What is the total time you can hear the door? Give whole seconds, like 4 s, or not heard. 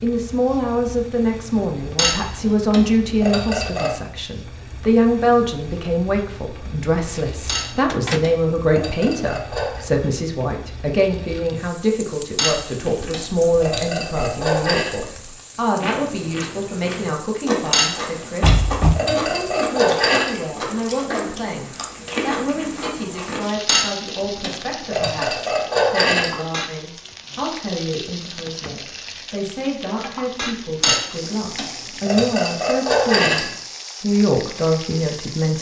2 s.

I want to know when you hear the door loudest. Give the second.
19 s.